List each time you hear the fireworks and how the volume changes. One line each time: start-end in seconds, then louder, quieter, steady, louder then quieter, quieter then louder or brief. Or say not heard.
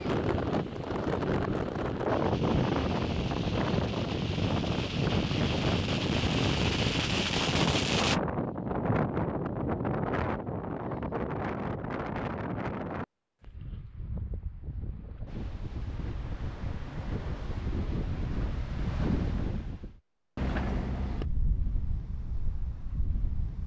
2.0-8.2 louder.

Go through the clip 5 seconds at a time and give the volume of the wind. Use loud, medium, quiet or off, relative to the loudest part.
loud, loud, medium, medium, medium.